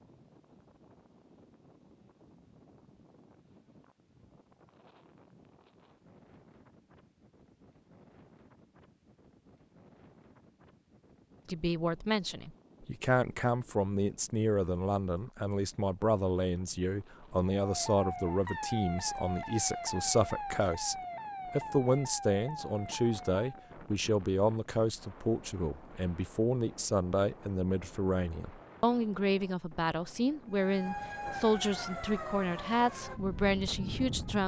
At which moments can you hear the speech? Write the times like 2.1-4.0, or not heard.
11.4-34.4.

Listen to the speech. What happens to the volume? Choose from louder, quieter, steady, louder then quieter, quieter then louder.
steady.